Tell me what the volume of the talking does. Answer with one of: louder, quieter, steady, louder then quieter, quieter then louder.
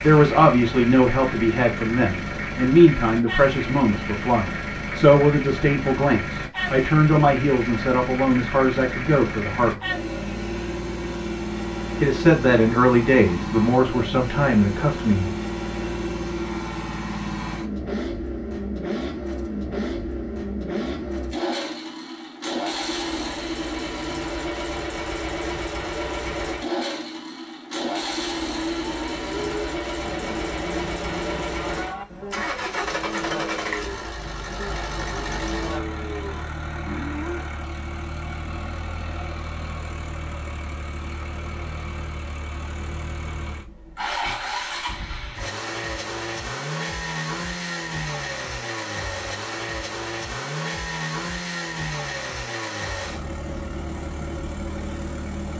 steady.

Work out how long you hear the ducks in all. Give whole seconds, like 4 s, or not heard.
not heard.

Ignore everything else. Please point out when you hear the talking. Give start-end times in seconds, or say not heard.
0.0-9.8, 12.0-15.3.